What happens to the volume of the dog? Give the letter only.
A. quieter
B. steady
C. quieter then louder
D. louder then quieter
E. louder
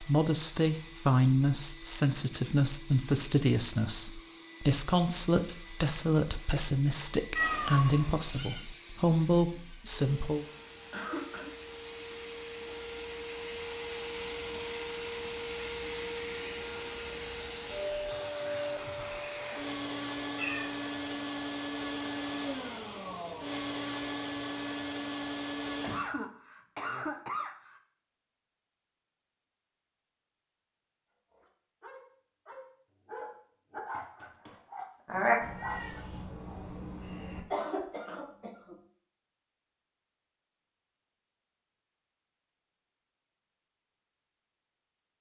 E.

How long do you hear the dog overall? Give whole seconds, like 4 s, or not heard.
5 s.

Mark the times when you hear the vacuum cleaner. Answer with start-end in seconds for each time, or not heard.
0.0-26.1.